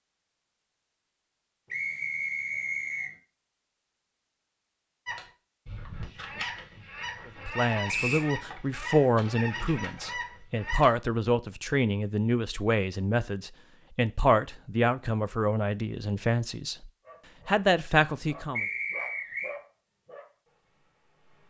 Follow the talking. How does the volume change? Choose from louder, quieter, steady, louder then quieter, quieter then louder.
steady.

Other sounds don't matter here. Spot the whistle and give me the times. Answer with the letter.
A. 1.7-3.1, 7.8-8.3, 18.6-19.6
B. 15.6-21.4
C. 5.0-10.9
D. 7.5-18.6
A.